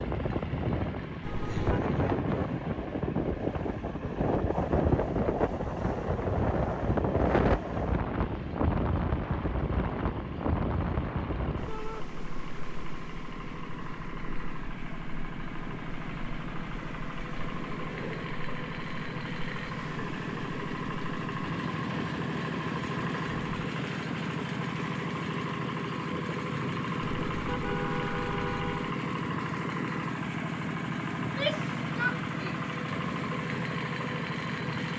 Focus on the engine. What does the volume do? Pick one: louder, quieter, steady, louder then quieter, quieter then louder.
louder.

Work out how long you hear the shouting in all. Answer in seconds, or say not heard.
2 s.